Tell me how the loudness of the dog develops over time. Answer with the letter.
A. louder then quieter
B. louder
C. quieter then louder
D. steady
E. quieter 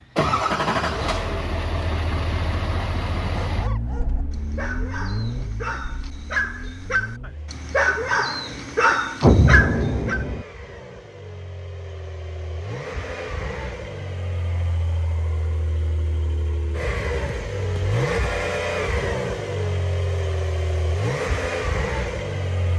B.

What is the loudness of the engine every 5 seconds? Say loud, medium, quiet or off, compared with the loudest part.
loud, medium, medium, loud, loud.